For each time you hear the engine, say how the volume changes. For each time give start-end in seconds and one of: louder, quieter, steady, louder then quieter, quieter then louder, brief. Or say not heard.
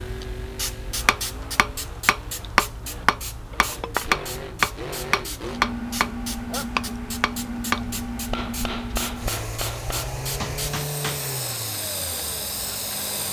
0.0-13.2 louder.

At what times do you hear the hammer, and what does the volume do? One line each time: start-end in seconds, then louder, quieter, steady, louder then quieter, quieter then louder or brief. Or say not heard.
1.1-11.2 quieter.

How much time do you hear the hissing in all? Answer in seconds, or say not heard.
13 s.